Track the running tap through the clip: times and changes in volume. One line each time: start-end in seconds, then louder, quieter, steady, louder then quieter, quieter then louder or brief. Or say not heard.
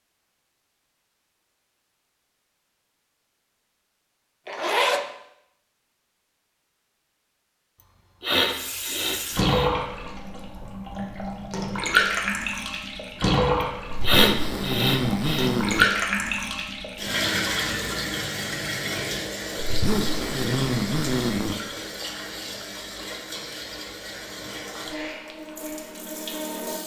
8.4-26.8 quieter.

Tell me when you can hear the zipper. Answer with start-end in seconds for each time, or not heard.
4.5-5.0, 13.9-15.8, 19.6-21.6.